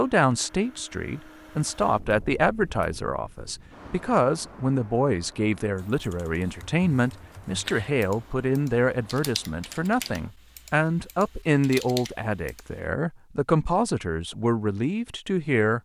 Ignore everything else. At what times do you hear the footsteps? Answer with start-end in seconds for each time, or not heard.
not heard.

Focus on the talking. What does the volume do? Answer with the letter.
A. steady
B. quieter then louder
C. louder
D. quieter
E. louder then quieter
A.